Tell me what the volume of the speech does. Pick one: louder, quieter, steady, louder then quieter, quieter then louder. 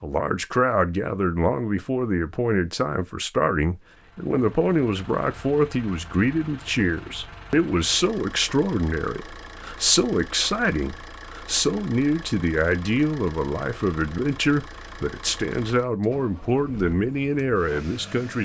steady.